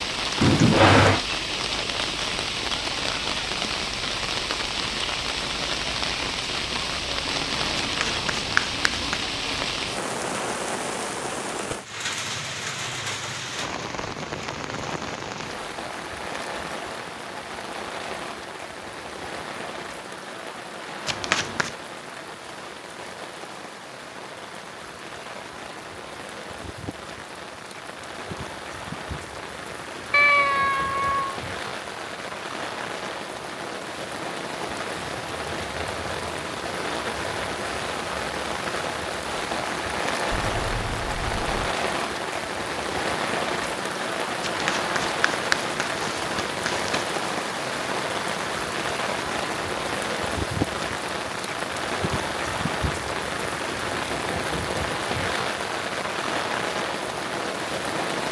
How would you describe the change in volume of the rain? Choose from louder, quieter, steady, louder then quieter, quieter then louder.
quieter then louder.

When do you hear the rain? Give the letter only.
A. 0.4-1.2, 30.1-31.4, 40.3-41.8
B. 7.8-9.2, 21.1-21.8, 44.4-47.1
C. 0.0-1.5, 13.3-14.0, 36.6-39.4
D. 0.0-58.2
D.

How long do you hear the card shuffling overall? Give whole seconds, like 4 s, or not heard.
5 s.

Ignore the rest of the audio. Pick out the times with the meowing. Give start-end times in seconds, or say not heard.
0.4-1.2, 30.1-31.4, 40.3-41.8.